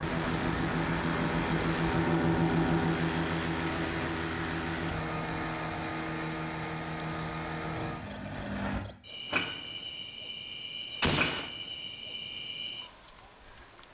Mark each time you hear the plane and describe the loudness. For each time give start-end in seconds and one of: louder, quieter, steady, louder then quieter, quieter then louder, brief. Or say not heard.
0.0-8.8 quieter.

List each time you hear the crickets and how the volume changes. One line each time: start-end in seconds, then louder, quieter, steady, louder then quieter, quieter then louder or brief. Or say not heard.
0.0-13.8 louder.